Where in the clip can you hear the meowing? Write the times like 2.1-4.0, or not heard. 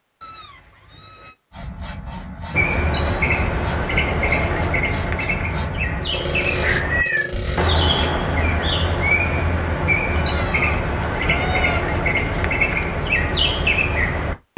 0.2-1.4, 6.8-7.3, 10.1-11.8.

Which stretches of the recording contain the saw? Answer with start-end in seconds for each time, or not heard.
1.5-8.2.